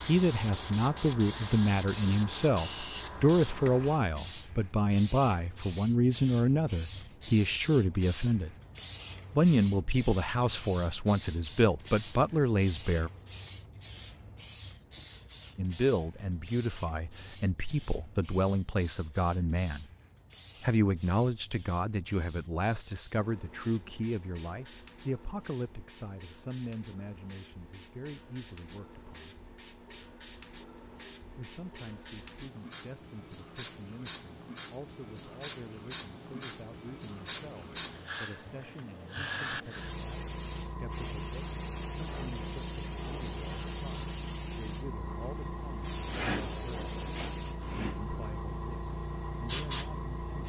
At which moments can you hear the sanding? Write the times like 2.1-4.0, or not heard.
not heard.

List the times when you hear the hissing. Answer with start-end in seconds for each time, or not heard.
0.0-50.4.